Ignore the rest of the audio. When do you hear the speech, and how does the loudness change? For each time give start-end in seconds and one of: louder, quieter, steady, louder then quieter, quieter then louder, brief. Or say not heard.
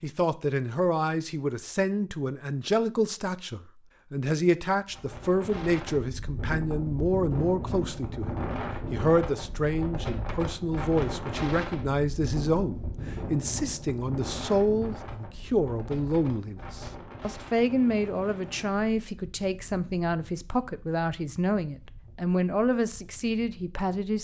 0.0-24.2 steady.